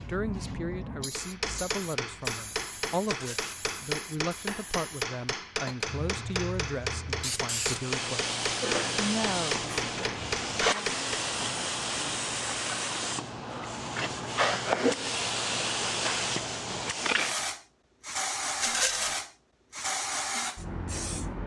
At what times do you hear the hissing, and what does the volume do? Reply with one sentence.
You can hear the hissing from 0.0 to 21.4 s, getting louder.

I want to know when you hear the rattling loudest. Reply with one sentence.
The loudest moment of the rattling is at 19 seconds.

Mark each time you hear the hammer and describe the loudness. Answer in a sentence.
You can hear the hammer from 1.1 to 11.2 s, at a steady volume.